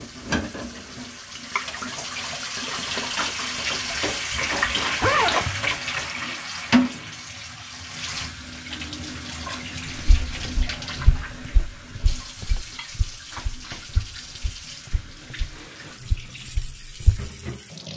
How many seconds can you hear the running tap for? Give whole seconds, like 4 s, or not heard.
18 s.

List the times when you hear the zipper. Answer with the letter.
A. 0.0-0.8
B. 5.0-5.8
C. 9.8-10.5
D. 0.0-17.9
B.